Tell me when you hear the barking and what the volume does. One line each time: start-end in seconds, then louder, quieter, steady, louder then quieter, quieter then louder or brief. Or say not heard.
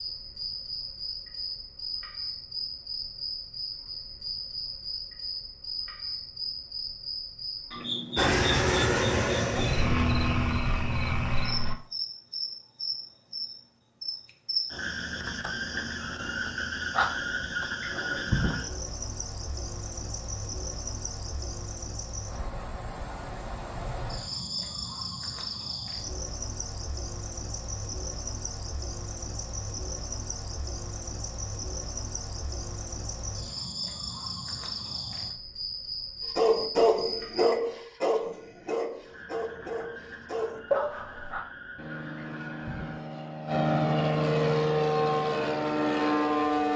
36.4-41.4 quieter then louder.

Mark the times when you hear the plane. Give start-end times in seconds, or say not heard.
8.2-11.8, 41.8-46.7.